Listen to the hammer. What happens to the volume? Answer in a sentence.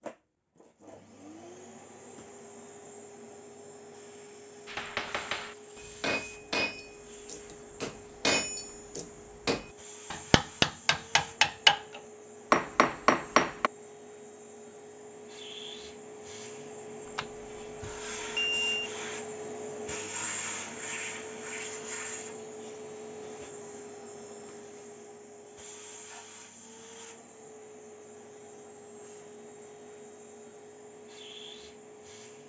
The volume of the hammer goes up.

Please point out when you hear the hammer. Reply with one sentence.
You can hear the hammer from 4.7 to 13.7 s.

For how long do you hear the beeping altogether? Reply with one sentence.
The beeping can be heard for 2 seconds in total.